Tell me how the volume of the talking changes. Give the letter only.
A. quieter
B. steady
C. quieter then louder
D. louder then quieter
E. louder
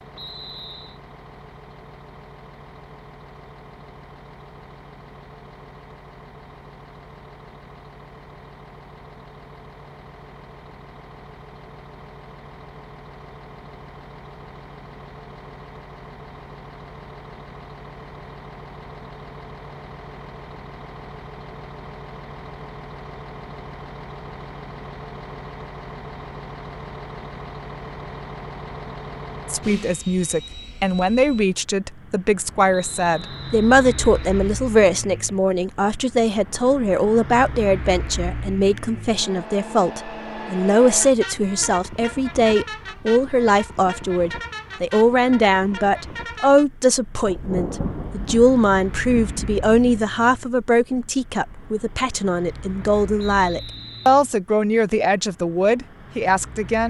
B.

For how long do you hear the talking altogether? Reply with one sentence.
You can hear the talking for 27 seconds altogether.